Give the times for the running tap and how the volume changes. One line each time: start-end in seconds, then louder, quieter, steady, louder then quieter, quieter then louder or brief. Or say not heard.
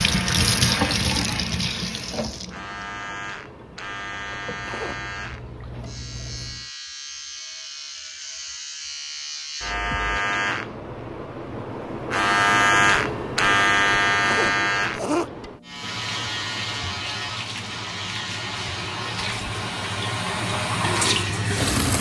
0.0-6.6 quieter then louder
15.8-21.9 louder.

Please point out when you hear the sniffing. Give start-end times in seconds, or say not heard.
4.6-5.0, 14.2-15.3.